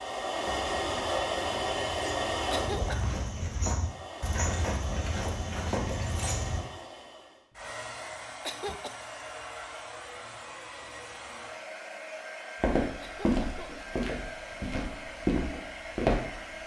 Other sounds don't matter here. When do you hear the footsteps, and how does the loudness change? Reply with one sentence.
You can hear the footsteps from 0.4 to 6.6 s, getting louder; and from 12.6 to 16.6 s, getting quieter then louder.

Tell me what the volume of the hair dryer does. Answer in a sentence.
The loudness of the hair dryer goes down.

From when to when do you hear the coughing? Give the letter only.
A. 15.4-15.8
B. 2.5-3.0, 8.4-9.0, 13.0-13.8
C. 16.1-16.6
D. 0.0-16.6
B.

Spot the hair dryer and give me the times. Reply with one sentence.
You can hear the hair dryer from 0.0 to 16.6 s.